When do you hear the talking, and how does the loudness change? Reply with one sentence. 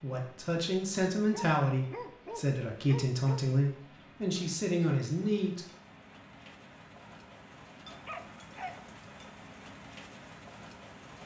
You can hear the talking from 0.0 to 5.7 s, at a steady volume.